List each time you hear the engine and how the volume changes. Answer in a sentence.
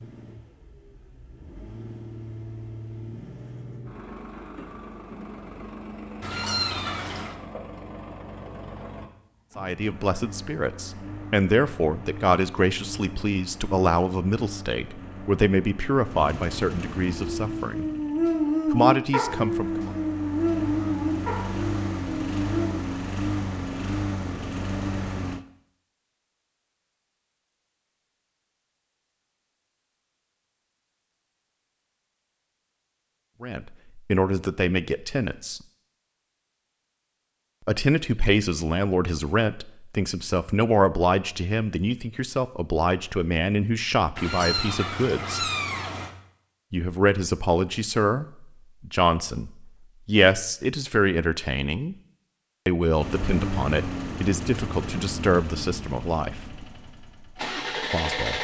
The engine can be heard from 0.0 to 25.4 s, getting louder; and from 53.0 to 58.3 s, getting quieter then louder.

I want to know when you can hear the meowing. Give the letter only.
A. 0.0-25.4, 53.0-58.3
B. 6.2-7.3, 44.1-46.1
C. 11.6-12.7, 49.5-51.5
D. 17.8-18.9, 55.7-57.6
B.